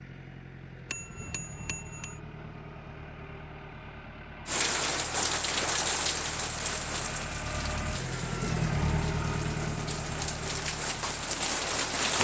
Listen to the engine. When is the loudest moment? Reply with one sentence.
The volume of the engine peaks at 9 seconds.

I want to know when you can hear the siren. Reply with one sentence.
You can't hear the siren here.